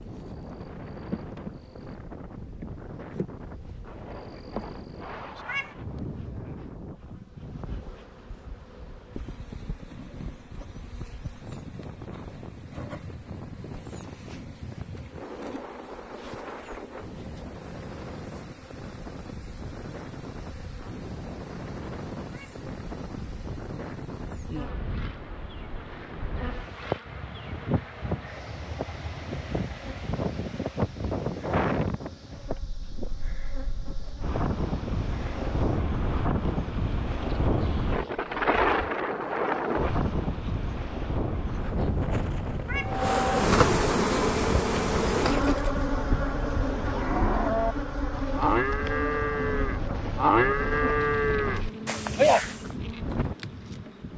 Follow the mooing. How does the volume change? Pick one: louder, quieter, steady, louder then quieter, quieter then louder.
louder.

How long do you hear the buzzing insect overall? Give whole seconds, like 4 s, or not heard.
54 s.